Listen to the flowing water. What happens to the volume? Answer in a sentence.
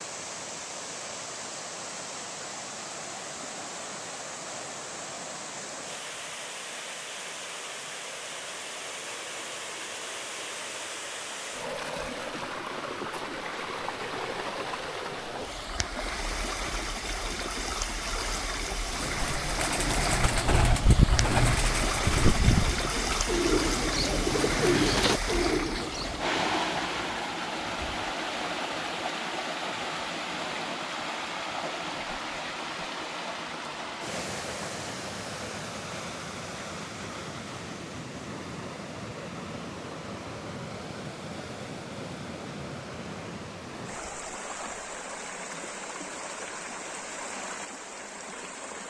The volume of the flowing water goes up, then down.